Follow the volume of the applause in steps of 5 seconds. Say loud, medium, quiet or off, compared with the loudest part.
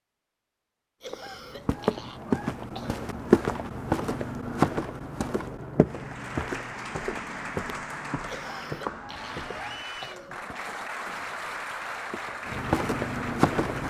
off, loud, loud.